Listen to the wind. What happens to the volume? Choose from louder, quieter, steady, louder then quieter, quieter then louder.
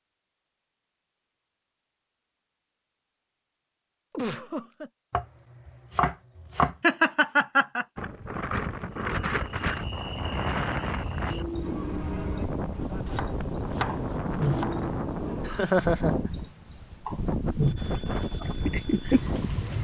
steady.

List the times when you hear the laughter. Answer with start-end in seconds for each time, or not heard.
4.1-4.9, 6.8-7.8, 15.4-16.1.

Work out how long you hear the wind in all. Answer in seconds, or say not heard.
12 s.